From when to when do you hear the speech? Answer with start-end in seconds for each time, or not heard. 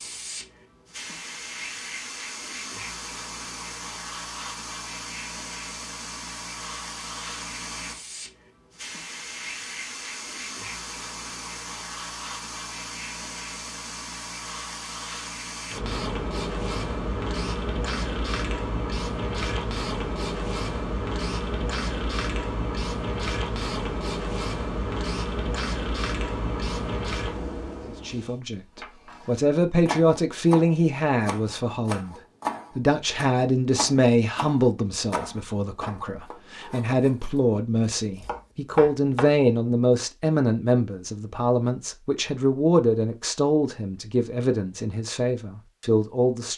28.1-32.1, 32.8-46.5.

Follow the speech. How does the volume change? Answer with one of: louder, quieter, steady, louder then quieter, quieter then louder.
steady.